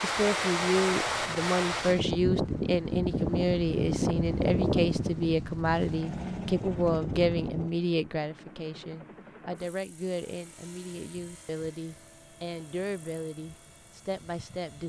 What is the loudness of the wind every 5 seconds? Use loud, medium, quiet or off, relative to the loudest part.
loud, medium, off.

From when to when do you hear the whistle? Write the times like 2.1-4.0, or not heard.
not heard.